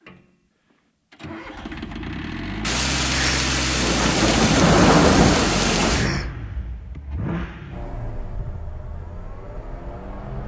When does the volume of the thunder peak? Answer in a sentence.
The volume of the thunder peaks at 5 seconds.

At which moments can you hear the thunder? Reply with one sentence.
You can hear the thunder from 2.6 to 6.1 s.